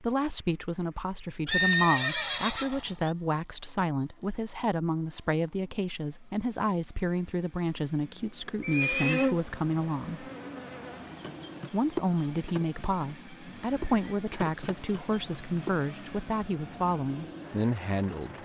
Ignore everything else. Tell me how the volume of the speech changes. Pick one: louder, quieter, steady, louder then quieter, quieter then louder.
steady.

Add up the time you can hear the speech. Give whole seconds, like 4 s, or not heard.
17 s.